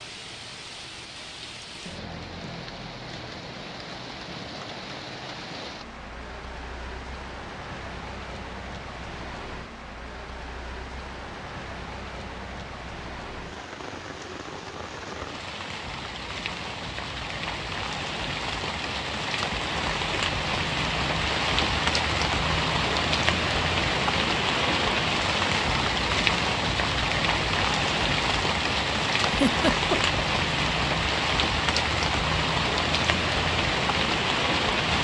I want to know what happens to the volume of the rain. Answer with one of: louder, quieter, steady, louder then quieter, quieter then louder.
louder.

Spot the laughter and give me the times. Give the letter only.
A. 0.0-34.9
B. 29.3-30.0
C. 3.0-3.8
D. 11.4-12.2
B.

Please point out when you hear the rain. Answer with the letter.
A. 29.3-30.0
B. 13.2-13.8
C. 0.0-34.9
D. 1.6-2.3
C.